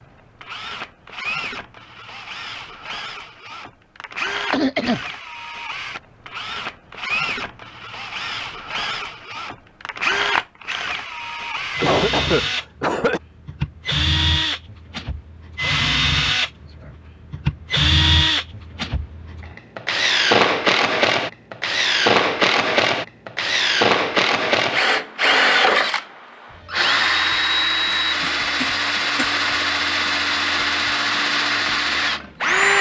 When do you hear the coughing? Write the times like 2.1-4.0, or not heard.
4.5-5.0, 11.8-13.2, 28.0-29.4.